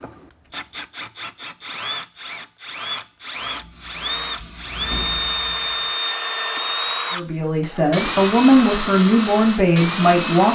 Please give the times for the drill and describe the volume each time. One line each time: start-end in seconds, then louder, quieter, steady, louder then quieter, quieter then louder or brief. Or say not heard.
0.0-10.5 louder.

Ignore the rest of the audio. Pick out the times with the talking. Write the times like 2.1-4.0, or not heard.
7.1-10.5.